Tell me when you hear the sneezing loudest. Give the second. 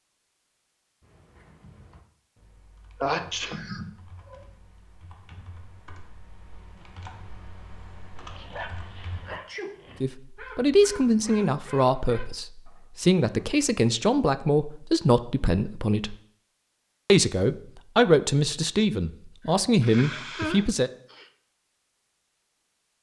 3 s.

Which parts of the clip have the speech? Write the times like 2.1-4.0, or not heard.
10.0-16.1, 17.1-20.9.